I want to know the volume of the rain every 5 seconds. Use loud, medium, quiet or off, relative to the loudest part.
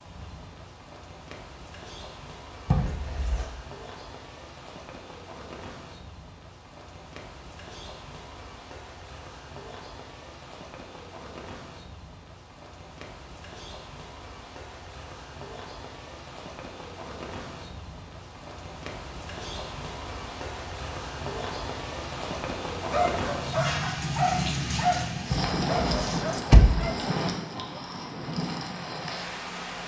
quiet, quiet, quiet, medium, loud, loud.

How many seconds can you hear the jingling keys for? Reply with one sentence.
You can hear the jingling keys for 2 seconds altogether.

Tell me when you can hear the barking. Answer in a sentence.
You can hear the barking from 22.9 to 27.9 s.